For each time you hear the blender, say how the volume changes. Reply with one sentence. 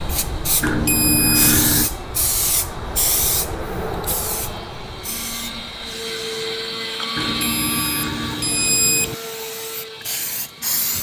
You can hear the blender from 0.0 to 10.9 s, getting louder then quieter.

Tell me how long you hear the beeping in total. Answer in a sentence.
You can hear the beeping for 3 seconds altogether.